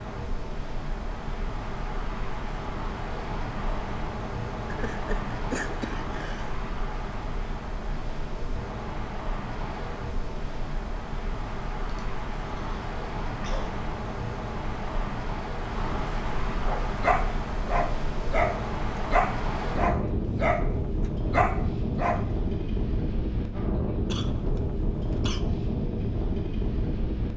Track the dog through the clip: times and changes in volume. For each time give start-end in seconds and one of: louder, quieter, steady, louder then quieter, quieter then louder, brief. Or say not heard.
16.6-22.2 steady.